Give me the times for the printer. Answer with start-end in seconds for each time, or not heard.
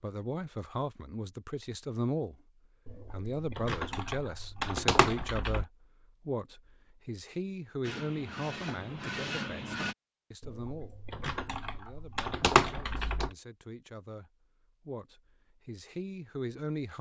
7.8-9.9.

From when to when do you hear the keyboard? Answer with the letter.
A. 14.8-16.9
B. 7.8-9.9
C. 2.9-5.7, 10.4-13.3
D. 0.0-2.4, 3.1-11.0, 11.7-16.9
C.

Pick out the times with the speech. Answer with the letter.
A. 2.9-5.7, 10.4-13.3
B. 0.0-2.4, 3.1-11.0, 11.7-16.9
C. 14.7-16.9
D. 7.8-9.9
B.